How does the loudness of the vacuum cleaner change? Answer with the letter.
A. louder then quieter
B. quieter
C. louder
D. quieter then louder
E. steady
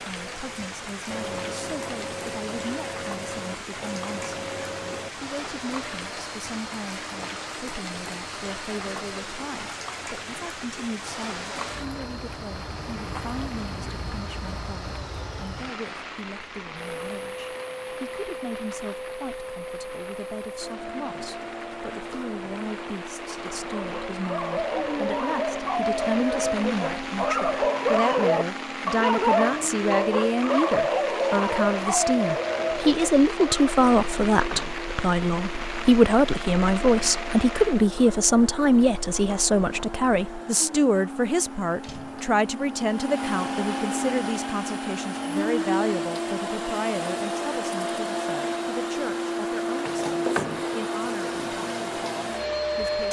C.